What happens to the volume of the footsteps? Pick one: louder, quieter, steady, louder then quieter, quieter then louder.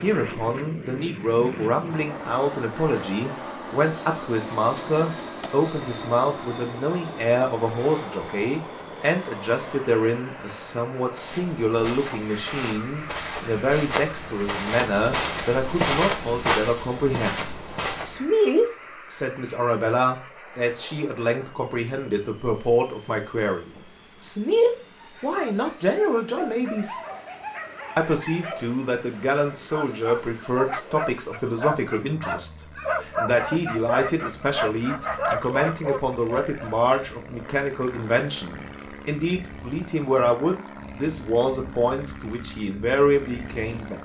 louder then quieter.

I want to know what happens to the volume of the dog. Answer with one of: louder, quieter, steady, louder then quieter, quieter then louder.
louder.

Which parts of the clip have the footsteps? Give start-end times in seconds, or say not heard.
11.2-18.3.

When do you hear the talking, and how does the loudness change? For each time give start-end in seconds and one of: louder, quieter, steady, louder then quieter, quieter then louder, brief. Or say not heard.
0.0-27.0 steady
27.9-44.0 steady.